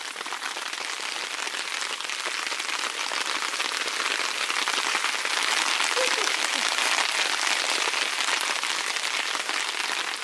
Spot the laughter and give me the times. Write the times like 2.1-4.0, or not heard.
6.0-6.7.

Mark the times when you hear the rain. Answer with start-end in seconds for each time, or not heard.
0.0-10.2.